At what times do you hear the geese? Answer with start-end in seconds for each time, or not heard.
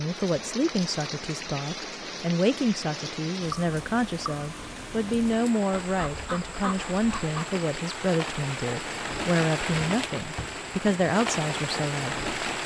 5.8-7.5.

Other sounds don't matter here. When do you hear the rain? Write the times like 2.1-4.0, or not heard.
0.0-12.6.